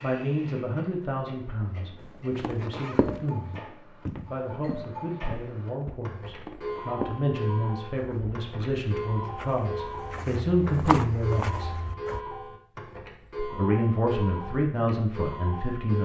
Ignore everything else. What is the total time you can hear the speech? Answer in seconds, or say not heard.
14 s.